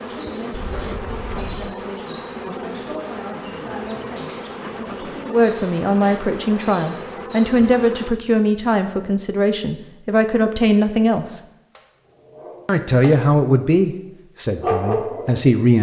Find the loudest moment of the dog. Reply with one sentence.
The loudest moment of the dog is at 15 seconds.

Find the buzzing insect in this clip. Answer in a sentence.
The buzzing insect can be heard from 0.0 to 8.2 s.